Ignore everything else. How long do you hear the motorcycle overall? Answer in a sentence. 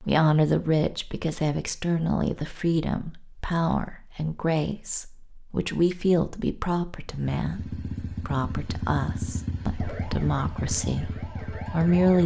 The motorcycle can be heard for 5 seconds in total.